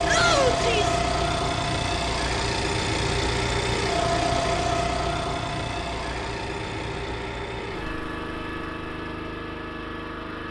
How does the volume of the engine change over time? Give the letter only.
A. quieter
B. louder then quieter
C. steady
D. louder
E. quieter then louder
A.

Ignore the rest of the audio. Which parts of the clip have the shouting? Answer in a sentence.
The shouting can be heard from 0.1 to 0.9 s.